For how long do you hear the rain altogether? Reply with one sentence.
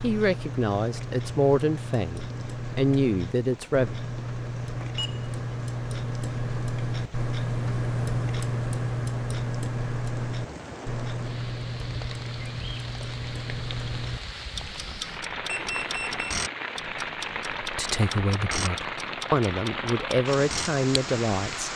You can hear the rain for 22 seconds altogether.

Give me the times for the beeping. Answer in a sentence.
You can hear the beeping from 4.8 to 5.3 s and from 15.4 to 16.3 s.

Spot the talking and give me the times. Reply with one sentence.
The talking can be heard from 0.0 to 4.0 s and from 17.6 to 21.7 s.